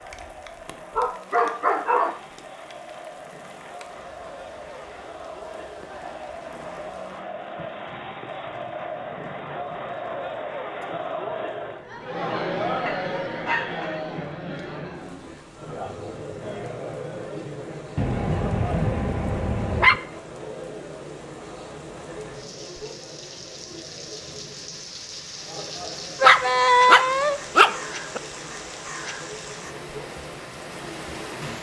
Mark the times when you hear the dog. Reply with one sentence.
The dog can be heard from 0.9 to 2.2 s, from 12.8 to 14.0 s, from 17.9 to 19.9 s and from 26.2 to 28.2 s.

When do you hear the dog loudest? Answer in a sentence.
The volume of the dog peaks at 27 seconds.